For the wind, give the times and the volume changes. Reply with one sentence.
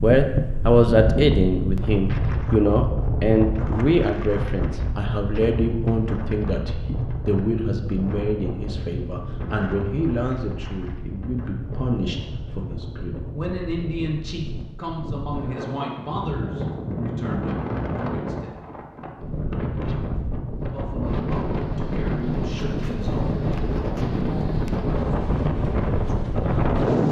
The wind can be heard from 0.0 to 27.0 s, getting quieter then louder.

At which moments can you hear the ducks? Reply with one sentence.
You can't hear the ducks here.